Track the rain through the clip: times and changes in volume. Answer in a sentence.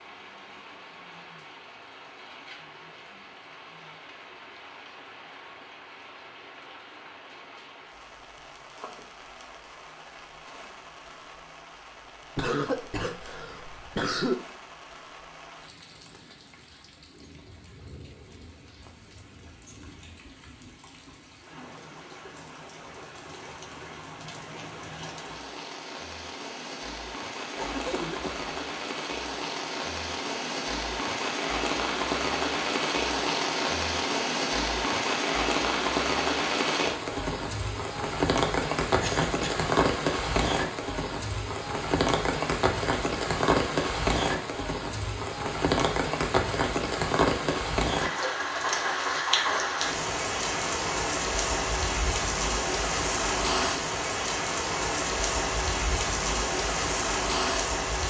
You can hear the rain from 0.0 to 58.0 s, getting louder.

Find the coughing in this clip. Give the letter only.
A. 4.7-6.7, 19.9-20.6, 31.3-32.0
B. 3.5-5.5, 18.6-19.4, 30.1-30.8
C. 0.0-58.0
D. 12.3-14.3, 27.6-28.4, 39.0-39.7
D.